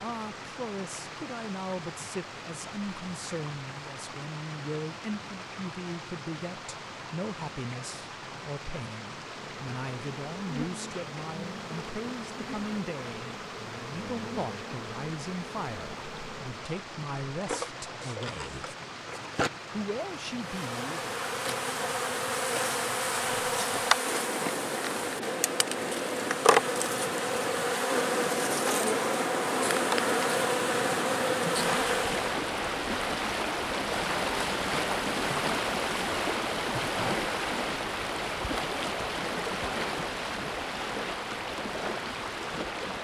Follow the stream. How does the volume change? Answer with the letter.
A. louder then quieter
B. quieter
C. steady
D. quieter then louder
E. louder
E.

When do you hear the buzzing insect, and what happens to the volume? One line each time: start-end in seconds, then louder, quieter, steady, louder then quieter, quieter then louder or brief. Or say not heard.
9.2-32.4 louder.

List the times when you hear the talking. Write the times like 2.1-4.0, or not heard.
0.0-18.8, 19.7-21.1.